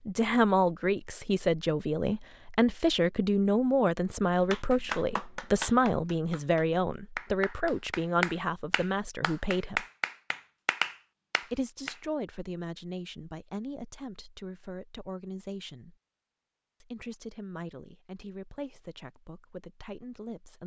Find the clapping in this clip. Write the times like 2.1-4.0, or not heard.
4.5-11.9.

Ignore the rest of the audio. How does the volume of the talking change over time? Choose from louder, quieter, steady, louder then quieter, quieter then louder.
quieter.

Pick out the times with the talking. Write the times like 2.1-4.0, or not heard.
0.1-9.8, 11.5-15.9, 16.8-20.6.